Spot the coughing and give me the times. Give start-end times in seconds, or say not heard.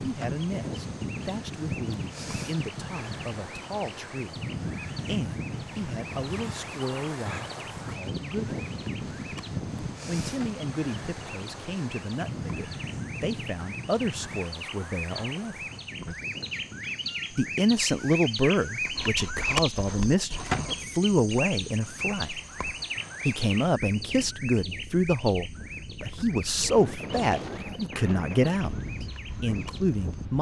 not heard.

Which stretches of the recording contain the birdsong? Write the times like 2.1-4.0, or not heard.
0.0-30.3.